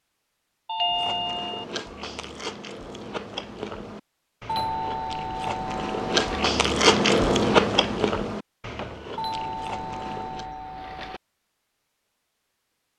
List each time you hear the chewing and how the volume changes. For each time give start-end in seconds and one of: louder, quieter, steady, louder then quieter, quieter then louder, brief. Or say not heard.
0.8-10.4 louder then quieter.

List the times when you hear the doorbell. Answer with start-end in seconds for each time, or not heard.
0.7-1.6, 4.5-6.5, 9.2-11.2.